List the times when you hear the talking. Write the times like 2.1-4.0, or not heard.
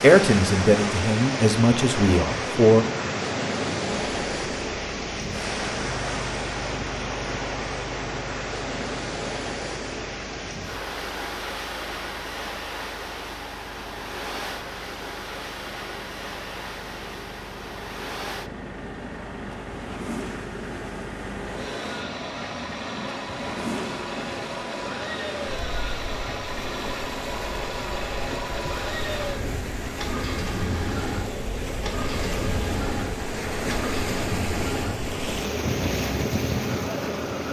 0.0-2.9.